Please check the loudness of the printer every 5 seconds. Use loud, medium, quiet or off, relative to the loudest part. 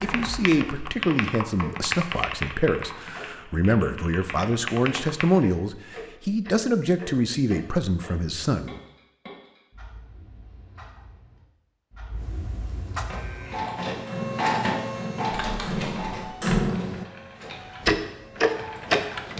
off, off, loud, medium.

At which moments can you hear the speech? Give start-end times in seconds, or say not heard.
0.0-8.8.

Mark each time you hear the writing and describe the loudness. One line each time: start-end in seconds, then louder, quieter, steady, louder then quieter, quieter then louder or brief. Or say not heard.
not heard.